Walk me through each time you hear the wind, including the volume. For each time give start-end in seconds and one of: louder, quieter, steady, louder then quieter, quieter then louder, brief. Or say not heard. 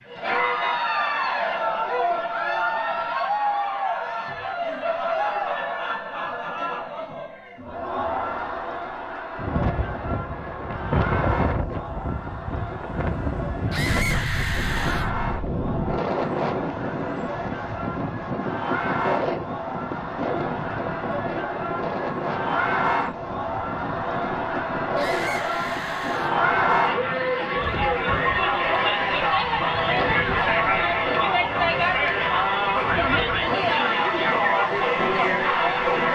9.3-36.0 quieter.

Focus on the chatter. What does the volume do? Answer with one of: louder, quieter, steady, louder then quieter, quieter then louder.
quieter then louder.